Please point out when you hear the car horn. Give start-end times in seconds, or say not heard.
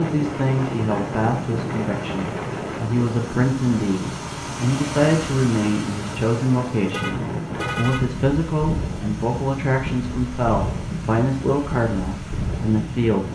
6.8-8.1.